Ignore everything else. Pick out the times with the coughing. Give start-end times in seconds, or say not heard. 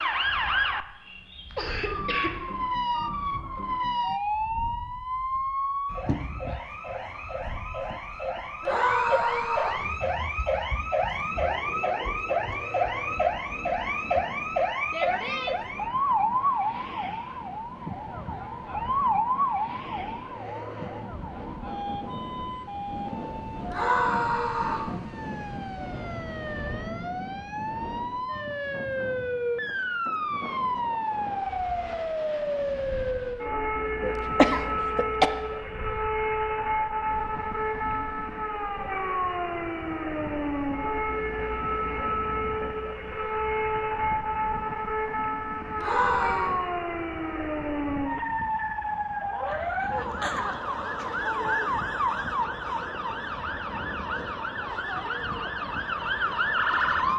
1.5-2.4, 34.0-35.3, 49.5-51.1.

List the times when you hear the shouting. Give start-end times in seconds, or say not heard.
8.6-9.8, 23.7-24.9, 45.8-46.5.